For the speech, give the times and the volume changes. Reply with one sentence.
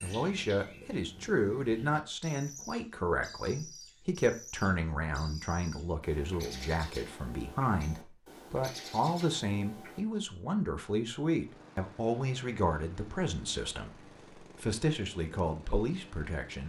You can hear the speech from 0.0 to 16.6 s, at a steady volume.